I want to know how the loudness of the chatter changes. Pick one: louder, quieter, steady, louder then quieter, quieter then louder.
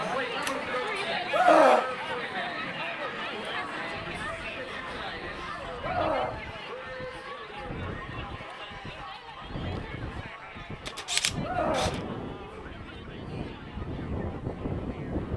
quieter.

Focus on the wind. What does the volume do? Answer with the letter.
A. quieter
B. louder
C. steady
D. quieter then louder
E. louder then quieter
B.